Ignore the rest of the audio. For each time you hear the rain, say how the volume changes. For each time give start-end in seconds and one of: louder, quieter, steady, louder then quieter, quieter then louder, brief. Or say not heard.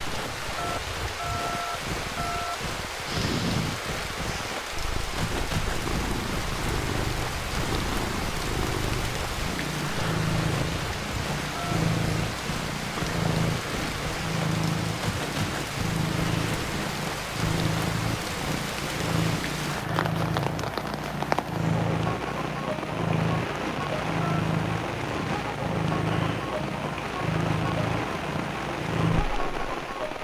0.0-30.1 steady.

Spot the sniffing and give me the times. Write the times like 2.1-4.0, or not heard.
3.0-4.5.